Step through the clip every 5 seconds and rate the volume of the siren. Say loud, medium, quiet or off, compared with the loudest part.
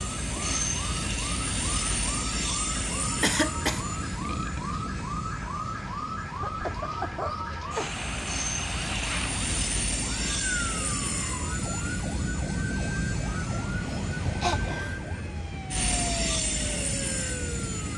loud, loud, loud, medium.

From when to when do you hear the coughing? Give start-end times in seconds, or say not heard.
3.2-3.8, 6.3-8.0, 14.4-15.0.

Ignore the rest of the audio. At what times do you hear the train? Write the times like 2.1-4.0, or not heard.
0.0-17.9.